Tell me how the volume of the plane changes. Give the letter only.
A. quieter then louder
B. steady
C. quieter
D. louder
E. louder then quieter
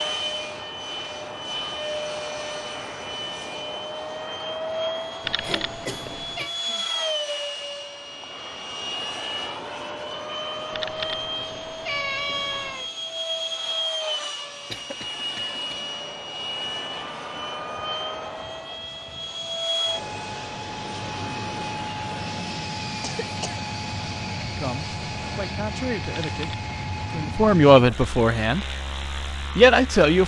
B.